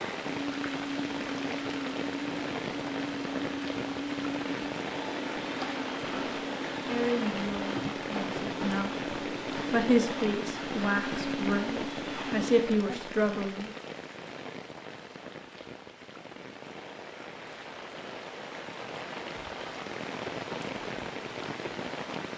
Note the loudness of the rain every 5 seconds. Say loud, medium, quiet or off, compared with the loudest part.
loud, loud, loud, medium, loud.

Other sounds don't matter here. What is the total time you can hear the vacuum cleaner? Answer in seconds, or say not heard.
13 s.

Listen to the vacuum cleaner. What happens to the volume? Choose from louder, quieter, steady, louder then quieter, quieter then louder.
steady.